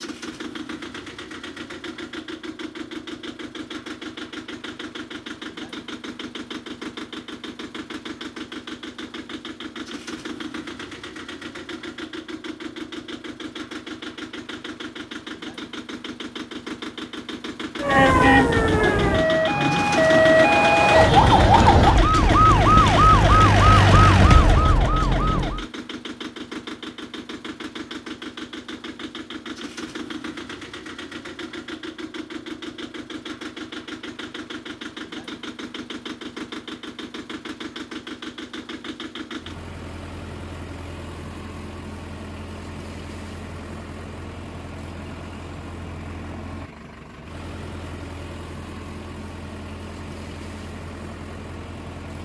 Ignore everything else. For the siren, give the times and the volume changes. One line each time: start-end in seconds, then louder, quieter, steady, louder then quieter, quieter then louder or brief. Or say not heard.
17.8-25.6 steady.